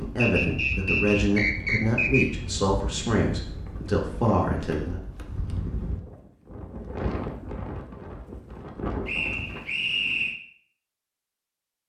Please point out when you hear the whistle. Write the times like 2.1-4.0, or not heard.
0.1-2.2, 9.1-10.3.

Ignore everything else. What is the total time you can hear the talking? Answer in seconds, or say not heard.
5 s.